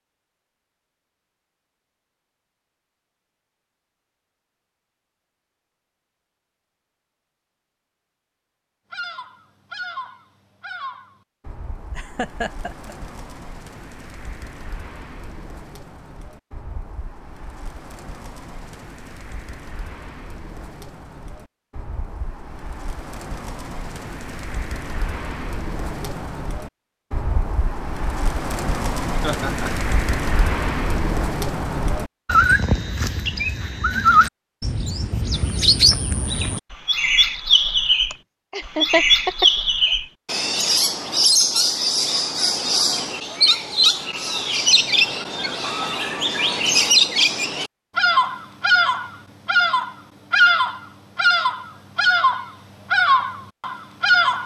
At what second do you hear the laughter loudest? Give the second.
39 s.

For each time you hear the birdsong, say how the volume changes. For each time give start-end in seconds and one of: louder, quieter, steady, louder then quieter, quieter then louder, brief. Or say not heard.
8.9-54.4 louder.